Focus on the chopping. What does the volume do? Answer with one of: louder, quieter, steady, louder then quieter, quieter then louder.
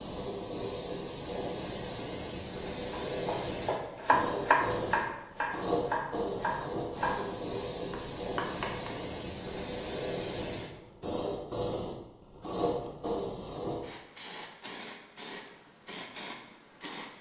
quieter.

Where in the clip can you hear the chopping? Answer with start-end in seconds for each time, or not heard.
2.9-8.9.